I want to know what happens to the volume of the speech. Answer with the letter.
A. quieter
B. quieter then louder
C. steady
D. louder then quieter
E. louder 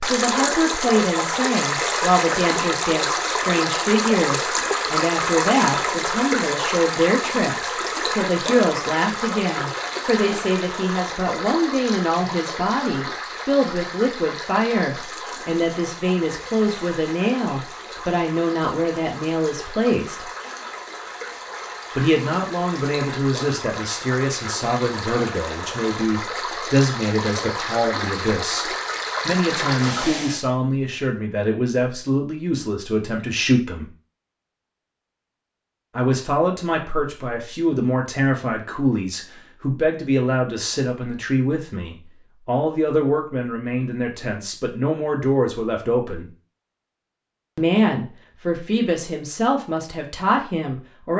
C.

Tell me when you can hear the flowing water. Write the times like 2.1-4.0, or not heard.
0.0-30.4.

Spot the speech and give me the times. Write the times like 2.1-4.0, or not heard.
0.0-20.2, 21.9-33.9, 36.0-46.3, 47.5-51.1.